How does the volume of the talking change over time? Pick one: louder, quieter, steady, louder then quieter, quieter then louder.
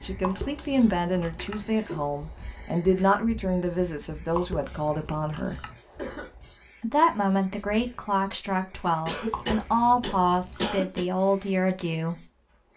steady.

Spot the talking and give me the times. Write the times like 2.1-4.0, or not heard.
0.0-5.6, 6.8-12.2.